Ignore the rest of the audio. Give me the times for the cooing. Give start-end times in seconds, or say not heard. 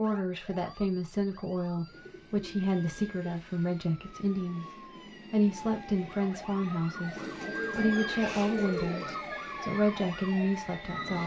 1.8-3.2, 7.2-9.2.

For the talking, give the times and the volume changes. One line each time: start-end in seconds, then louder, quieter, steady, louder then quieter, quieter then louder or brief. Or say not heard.
0.0-11.2 steady.